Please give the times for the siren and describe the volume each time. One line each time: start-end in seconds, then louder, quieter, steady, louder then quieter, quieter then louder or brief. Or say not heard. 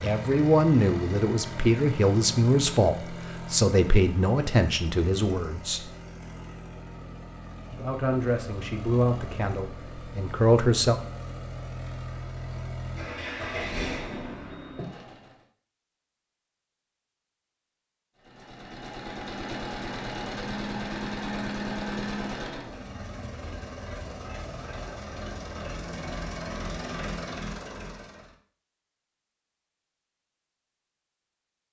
not heard.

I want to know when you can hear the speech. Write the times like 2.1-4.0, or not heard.
0.0-5.9, 7.7-10.9.